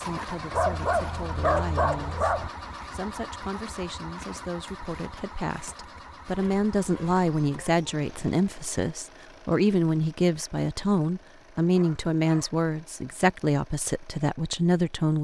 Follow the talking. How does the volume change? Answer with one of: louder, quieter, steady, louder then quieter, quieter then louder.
louder.